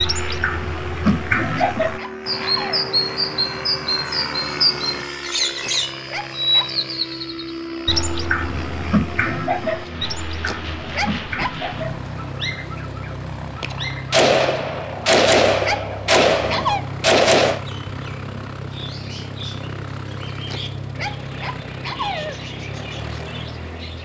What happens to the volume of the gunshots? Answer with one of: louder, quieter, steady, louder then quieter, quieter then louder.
steady.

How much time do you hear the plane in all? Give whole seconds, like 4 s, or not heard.
24 s.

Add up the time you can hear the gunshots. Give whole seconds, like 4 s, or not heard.
4 s.